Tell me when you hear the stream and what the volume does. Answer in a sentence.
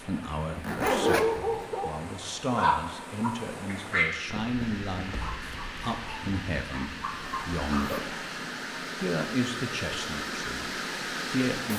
You can hear the stream from 0.0 to 11.7 s, getting louder.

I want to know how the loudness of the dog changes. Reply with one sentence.
The volume of the dog goes down.